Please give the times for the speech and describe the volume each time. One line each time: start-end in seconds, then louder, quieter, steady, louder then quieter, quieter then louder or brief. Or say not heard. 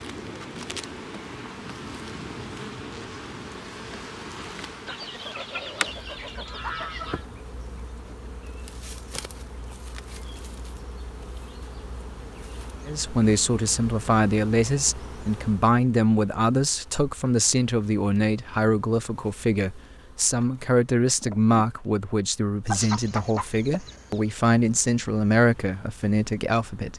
12.8-26.9 steady.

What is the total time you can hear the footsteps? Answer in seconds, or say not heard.
not heard.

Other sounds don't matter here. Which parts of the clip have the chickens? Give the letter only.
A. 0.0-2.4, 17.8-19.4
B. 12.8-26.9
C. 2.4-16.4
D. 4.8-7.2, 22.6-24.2
D.